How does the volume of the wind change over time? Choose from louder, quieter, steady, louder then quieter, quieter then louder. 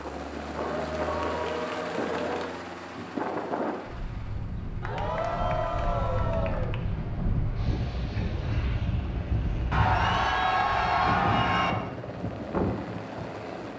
steady.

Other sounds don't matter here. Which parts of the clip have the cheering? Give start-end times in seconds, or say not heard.
0.6-2.5, 4.8-6.8, 9.7-11.8.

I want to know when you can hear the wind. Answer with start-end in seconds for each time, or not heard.
0.0-13.7.